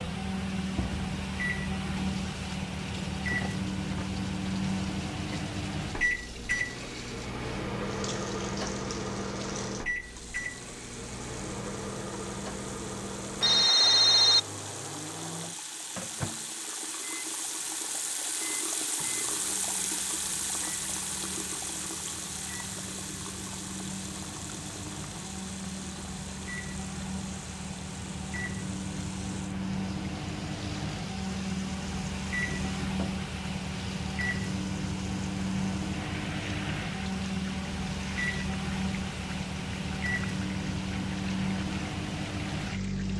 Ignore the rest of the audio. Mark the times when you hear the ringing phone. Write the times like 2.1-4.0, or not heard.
13.4-14.4, 32.5-33.2.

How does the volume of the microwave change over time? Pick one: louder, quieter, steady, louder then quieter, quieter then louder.
quieter then louder.